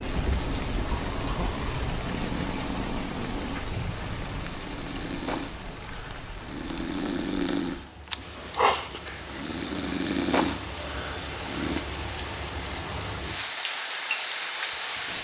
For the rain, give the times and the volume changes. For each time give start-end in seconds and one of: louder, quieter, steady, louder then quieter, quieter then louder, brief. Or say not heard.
0.0-15.1 quieter then louder.